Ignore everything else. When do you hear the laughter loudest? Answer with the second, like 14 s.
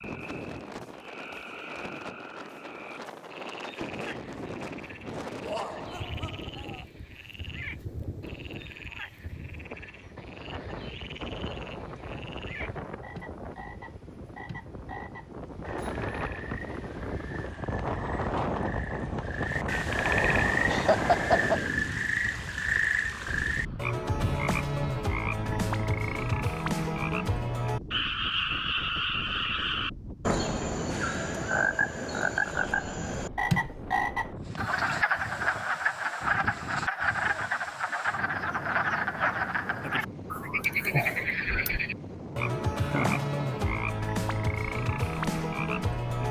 21 s.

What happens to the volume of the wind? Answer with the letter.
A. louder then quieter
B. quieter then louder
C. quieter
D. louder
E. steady
A.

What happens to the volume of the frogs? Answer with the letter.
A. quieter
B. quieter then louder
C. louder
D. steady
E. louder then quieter
C.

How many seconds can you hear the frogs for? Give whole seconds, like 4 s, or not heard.
46 s.